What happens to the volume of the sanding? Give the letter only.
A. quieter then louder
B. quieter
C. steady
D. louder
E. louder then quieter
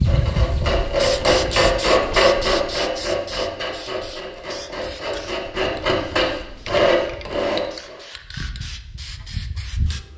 A.